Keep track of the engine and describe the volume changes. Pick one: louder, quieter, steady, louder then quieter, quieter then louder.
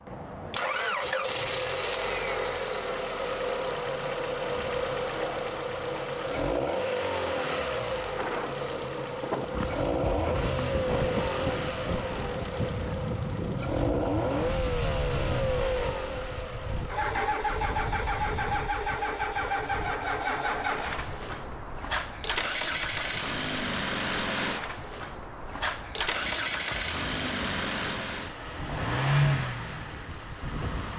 steady.